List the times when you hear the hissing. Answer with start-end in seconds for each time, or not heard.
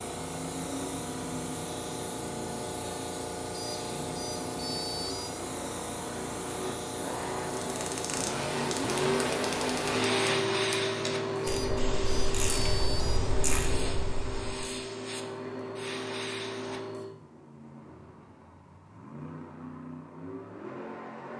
0.0-17.1.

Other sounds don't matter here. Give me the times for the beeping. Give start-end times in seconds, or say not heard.
3.5-5.3, 11.4-13.2.